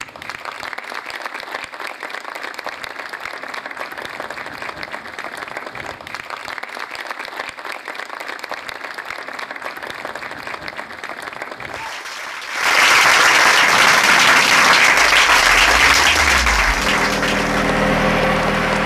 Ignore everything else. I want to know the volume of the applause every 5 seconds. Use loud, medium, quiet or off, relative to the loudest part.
quiet, quiet, loud, loud.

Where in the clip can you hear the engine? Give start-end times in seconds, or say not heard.
13.4-18.8.